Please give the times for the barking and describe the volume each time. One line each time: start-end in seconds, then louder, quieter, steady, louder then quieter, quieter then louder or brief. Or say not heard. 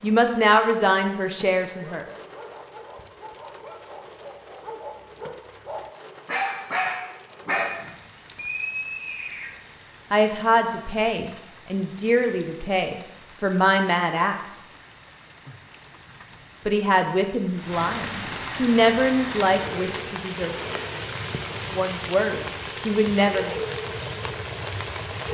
1.8-7.9 louder.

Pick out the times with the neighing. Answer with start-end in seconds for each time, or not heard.
8.3-9.5.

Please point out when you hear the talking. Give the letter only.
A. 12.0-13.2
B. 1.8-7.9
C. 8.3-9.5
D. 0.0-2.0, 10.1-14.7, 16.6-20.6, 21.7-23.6
D.